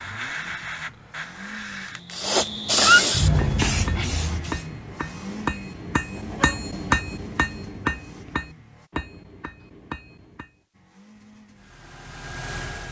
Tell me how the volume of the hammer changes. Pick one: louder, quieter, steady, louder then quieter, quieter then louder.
louder then quieter.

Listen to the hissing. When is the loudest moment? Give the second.
3 s.